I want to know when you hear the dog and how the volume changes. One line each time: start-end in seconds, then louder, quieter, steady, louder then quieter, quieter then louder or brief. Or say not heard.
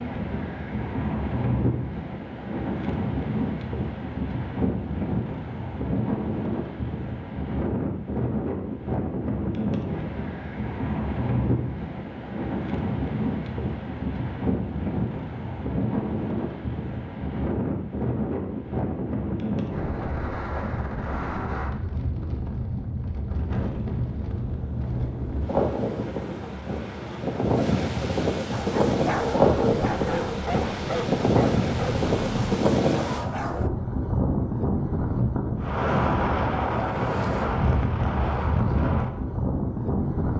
28.5-33.7 steady.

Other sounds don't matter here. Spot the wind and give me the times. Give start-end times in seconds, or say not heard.
0.0-40.3.